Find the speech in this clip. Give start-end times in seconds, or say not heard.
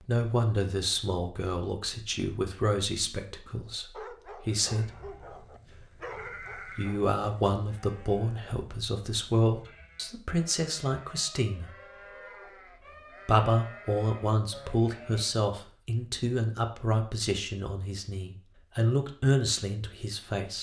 0.0-11.7, 13.2-20.5.